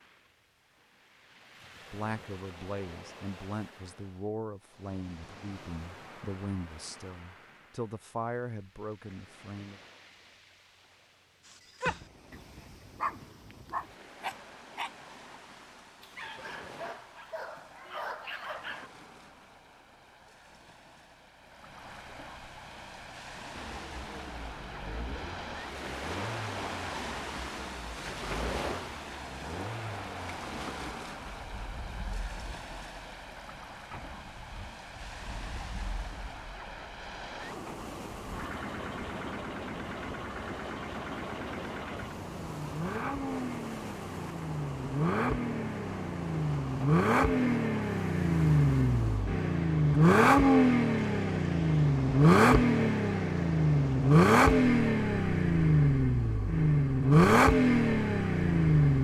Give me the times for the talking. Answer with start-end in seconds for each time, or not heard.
1.9-9.8.